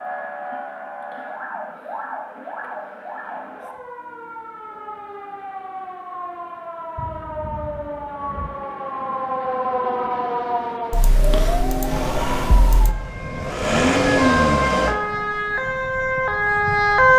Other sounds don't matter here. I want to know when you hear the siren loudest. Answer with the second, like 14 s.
17 s.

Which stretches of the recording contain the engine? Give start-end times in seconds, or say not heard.
11.8-14.9.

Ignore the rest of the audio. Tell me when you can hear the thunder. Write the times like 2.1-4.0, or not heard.
7.0-8.5.